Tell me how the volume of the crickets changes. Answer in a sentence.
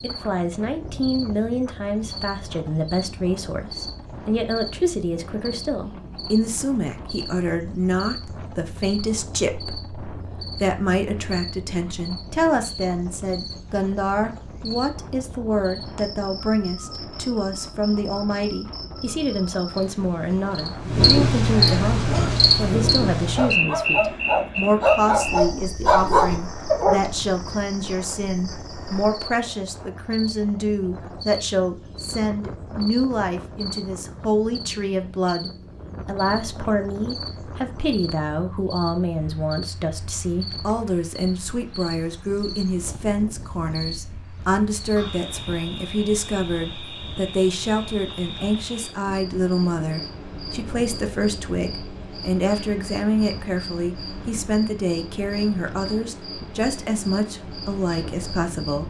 The loudness of the crickets goes up, then down.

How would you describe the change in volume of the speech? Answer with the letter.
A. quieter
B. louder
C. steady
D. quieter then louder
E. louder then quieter
C.